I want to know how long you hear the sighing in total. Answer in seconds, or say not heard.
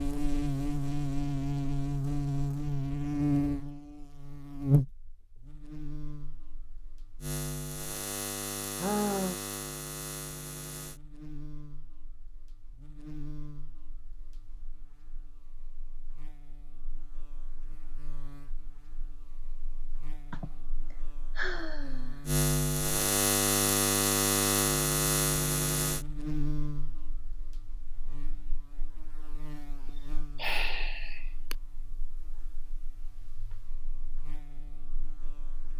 4 s.